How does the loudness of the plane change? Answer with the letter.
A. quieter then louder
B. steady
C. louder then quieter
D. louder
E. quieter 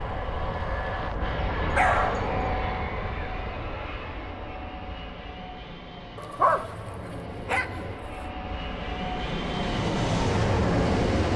A.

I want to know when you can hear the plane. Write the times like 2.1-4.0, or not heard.
0.0-11.3.